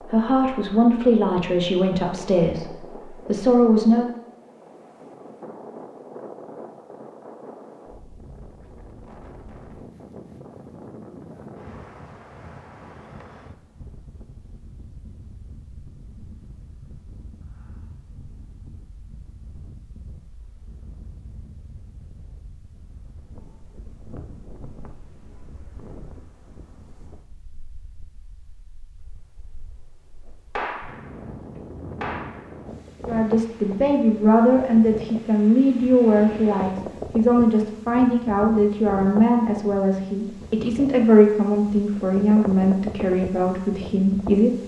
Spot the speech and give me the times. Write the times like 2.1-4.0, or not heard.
0.0-4.1, 33.0-44.5.